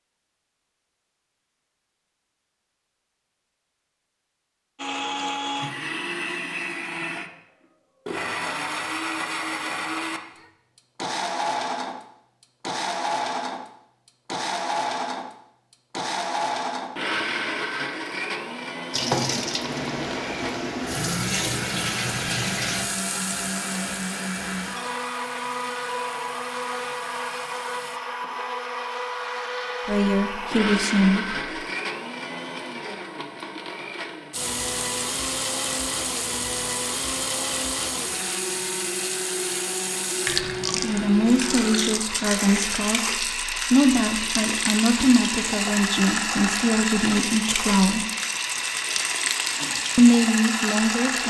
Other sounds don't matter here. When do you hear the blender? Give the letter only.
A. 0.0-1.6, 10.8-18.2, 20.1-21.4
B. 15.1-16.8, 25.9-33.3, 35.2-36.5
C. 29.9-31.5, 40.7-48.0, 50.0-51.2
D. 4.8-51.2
D.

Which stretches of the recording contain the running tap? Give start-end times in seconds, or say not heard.
18.9-28.0, 34.3-51.2.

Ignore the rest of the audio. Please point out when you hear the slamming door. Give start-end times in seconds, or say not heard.
not heard.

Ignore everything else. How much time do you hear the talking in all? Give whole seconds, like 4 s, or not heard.
10 s.